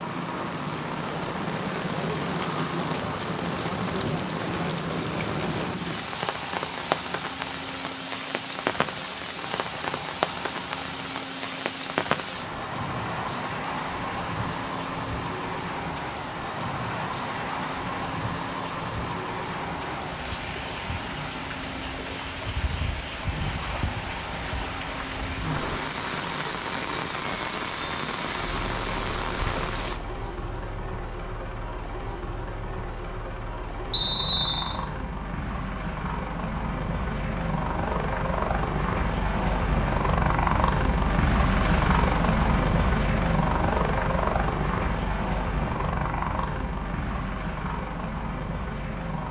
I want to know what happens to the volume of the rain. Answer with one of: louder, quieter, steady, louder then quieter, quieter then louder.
steady.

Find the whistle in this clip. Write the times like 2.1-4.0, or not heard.
33.9-34.8.